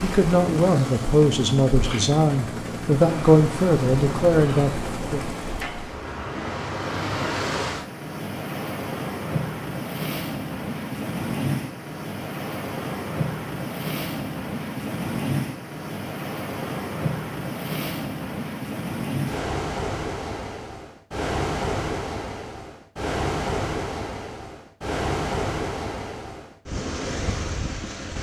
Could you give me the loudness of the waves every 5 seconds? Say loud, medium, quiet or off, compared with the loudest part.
medium, loud, loud, loud, loud, loud.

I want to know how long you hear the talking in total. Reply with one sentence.
The talking can be heard for 5 seconds in total.